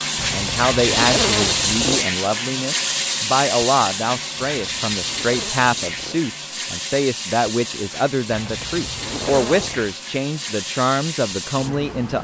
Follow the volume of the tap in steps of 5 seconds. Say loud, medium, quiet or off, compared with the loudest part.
loud, medium, medium.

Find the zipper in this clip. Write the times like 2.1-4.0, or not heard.
0.1-2.0, 4.5-6.2, 8.3-9.9.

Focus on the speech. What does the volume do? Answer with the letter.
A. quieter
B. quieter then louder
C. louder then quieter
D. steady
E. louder
D.